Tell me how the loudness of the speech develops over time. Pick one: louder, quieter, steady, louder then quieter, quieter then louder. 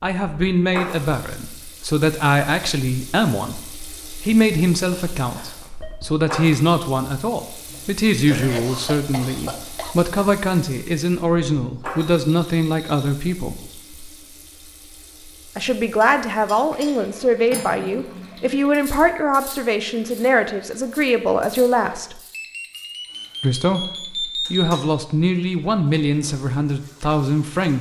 steady.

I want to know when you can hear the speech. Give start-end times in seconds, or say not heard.
0.0-13.7, 15.6-22.1, 23.4-27.7.